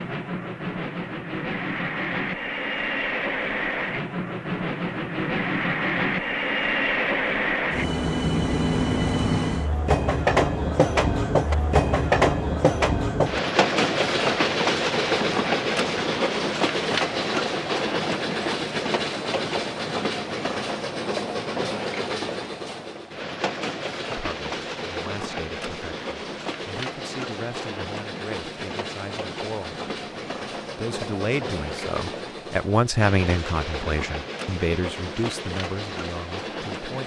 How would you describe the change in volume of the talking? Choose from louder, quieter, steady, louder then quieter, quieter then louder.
louder then quieter.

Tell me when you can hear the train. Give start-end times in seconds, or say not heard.
0.0-37.0.